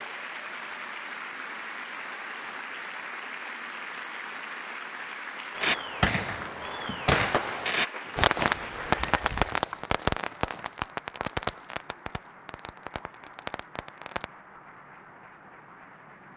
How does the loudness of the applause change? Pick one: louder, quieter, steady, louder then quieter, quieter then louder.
quieter.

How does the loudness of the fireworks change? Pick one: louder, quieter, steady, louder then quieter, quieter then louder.
quieter.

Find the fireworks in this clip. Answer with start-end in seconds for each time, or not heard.
5.6-14.2.